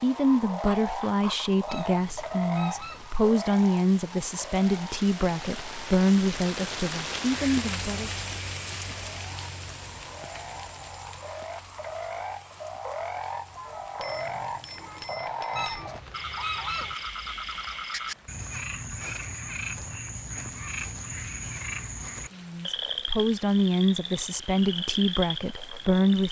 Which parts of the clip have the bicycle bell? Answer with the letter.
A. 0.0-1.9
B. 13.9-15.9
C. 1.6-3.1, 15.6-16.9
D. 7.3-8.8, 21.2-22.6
B.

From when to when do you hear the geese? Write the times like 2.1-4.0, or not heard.
1.6-3.1, 15.6-16.9.